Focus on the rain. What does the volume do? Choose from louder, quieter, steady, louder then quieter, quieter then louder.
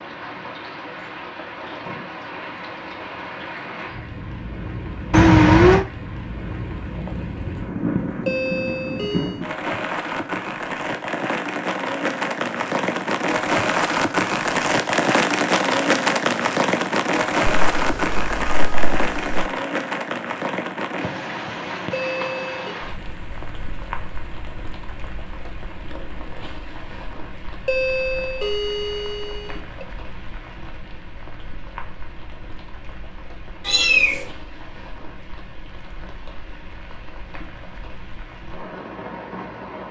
louder then quieter.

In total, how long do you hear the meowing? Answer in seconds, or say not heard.
3 s.